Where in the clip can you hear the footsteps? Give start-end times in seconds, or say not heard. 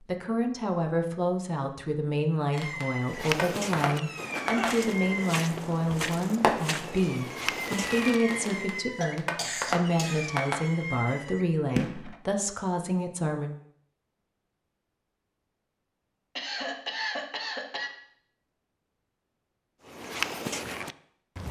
3.0-8.8, 19.9-21.4.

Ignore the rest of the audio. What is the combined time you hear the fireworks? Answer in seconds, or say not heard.
10 s.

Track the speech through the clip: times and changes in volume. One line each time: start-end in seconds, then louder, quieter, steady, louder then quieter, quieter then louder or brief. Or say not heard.
0.0-13.5 steady.